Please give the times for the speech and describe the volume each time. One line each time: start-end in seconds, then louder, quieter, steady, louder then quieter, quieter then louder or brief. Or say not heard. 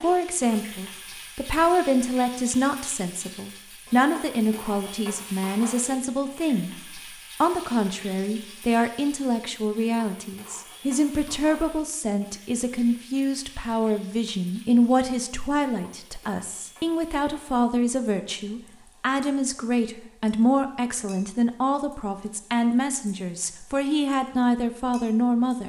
0.0-25.6 steady.